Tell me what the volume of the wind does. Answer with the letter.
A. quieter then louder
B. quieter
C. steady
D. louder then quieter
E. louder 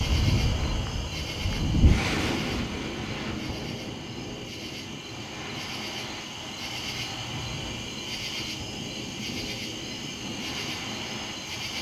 B.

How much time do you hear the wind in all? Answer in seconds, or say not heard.
12 s.